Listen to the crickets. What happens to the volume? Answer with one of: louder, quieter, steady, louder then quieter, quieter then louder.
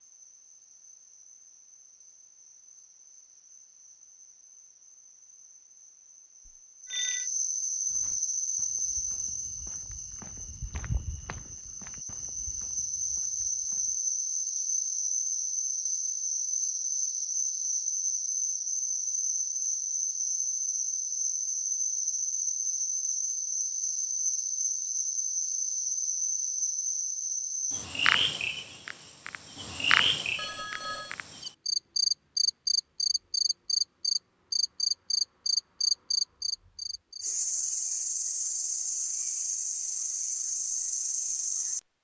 louder.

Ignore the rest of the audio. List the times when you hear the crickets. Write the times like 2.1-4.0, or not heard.
0.0-41.8.